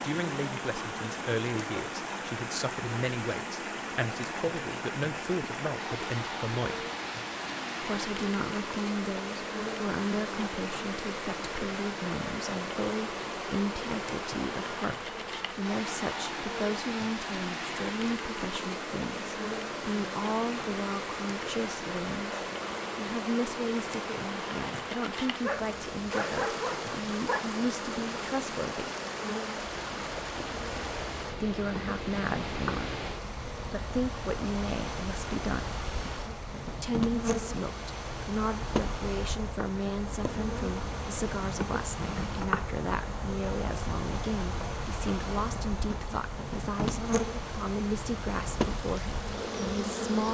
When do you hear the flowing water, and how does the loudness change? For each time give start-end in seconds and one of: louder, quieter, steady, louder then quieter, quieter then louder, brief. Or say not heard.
0.0-50.2 quieter.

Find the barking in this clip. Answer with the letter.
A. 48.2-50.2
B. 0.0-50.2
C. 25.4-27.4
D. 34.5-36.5
C.